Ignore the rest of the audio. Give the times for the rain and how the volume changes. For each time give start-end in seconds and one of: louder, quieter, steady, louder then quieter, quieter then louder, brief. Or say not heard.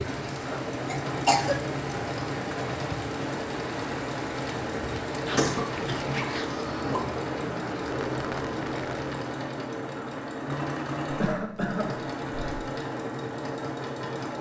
0.0-9.3 steady.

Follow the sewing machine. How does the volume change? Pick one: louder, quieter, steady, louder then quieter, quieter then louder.
steady.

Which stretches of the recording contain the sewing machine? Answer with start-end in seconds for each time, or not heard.
0.0-14.3.